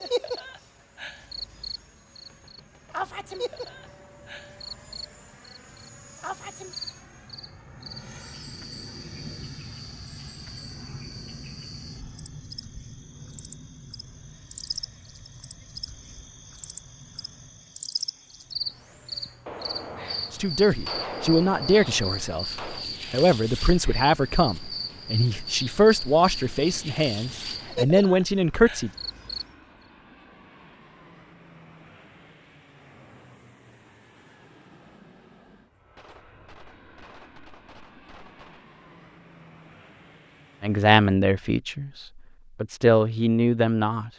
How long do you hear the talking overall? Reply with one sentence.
You can hear the talking for 12 seconds altogether.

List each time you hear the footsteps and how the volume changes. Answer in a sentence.
The footsteps can't be heard in this clip.